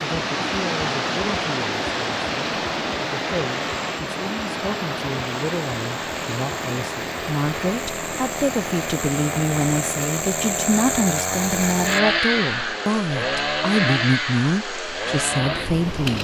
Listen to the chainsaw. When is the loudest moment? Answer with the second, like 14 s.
12 s.